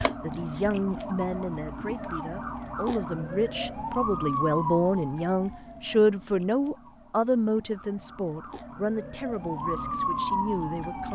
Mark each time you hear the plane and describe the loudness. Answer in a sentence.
The plane can't be heard in this clip.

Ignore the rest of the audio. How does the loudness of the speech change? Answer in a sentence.
The volume of the speech goes up, then down.